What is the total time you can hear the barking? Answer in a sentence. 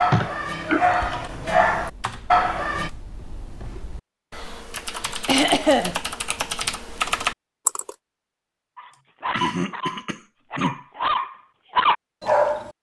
You can hear the barking for 7 seconds altogether.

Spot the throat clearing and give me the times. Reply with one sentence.
The throat clearing can be heard from 0.1 to 0.9 s, from 5.2 to 6.0 s and from 9.3 to 10.8 s.